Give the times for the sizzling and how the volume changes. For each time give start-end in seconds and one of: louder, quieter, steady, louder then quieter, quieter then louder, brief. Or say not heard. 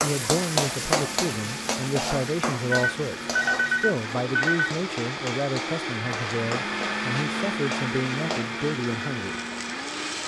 0.0-10.2 quieter.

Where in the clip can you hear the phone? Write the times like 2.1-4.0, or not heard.
2.7-4.8.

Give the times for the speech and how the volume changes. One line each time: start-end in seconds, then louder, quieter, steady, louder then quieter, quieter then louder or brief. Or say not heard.
0.0-9.3 steady.